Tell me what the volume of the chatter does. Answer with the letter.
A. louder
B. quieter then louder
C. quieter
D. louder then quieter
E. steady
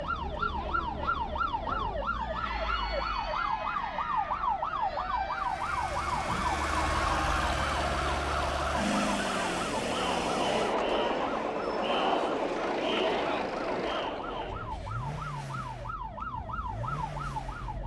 A.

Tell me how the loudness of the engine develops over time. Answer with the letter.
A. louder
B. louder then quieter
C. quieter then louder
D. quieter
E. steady
D.